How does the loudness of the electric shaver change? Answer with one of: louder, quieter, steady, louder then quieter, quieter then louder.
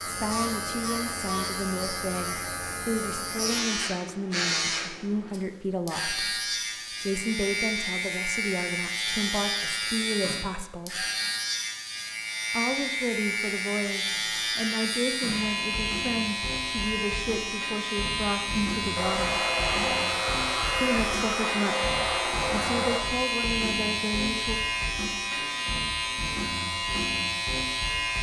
steady.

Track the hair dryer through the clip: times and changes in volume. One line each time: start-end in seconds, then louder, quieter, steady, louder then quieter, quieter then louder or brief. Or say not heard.
18.9-23.0 steady.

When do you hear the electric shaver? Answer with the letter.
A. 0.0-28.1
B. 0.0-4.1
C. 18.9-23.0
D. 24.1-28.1
A.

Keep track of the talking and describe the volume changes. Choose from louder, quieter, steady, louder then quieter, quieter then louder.
steady.